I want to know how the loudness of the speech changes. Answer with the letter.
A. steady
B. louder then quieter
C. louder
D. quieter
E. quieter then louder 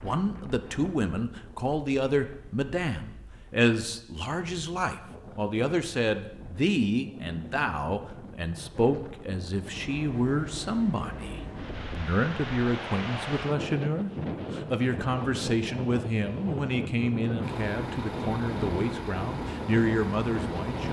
A.